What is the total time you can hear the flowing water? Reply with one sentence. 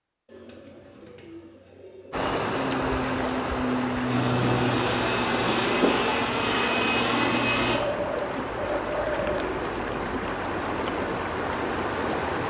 The flowing water can be heard for 10 seconds in total.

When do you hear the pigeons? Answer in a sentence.
You can hear the pigeons from 0.2 to 2.1 s and from 7.7 to 9.6 s.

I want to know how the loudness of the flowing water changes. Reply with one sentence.
The loudness of the flowing water stays about the same.